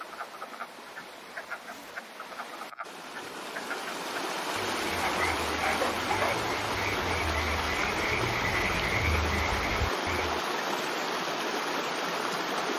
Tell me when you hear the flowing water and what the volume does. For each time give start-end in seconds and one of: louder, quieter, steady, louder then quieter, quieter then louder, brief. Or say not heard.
0.0-12.7 louder.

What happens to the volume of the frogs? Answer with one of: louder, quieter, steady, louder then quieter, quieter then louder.
louder.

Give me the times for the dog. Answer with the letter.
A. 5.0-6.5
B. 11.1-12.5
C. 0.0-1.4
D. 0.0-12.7
A.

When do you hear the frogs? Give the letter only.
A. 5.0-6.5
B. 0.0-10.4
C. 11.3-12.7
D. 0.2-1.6
B.